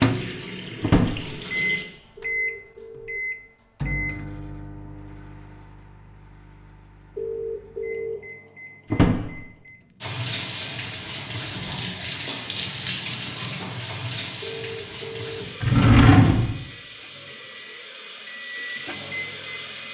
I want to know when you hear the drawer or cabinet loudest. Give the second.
16 s.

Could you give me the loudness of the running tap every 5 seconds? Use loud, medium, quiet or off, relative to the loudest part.
loud, off, loud, medium.